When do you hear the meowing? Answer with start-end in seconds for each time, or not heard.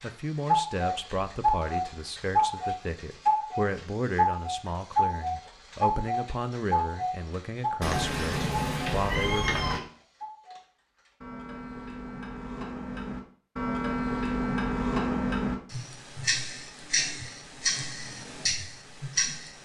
7.8-9.8.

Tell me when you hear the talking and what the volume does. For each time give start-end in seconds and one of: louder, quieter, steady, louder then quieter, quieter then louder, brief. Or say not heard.
0.0-9.6 steady.